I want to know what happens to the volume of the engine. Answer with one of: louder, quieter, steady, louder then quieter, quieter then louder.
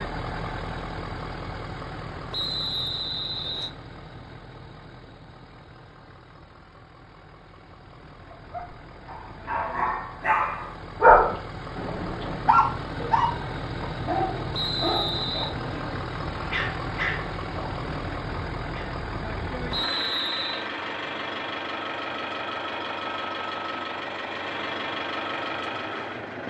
quieter then louder.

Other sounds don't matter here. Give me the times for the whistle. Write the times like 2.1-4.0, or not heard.
2.3-3.7, 14.5-15.6, 19.7-20.6.